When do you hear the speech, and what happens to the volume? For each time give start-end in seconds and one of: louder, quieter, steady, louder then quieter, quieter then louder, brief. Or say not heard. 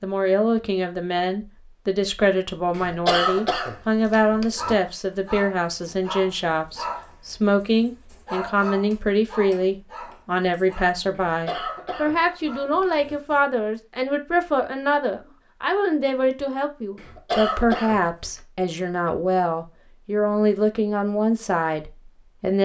0.0-22.6 steady.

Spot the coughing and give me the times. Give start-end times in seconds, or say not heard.
2.7-4.8, 11.2-13.2, 16.9-18.4.